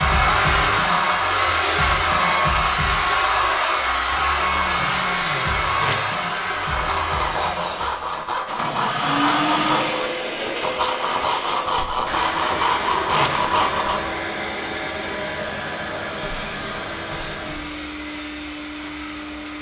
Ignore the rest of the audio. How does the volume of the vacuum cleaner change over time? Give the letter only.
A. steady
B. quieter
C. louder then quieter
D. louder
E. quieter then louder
B.